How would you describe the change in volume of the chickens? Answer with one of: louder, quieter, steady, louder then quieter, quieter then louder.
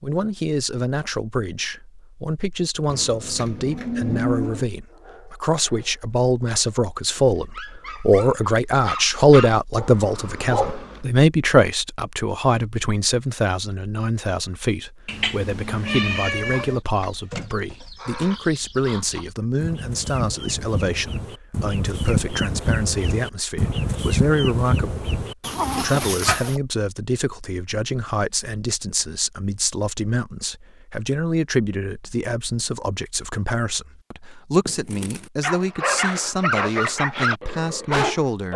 louder.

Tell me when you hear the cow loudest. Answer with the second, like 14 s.
4 s.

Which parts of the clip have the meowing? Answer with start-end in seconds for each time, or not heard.
15.1-16.8.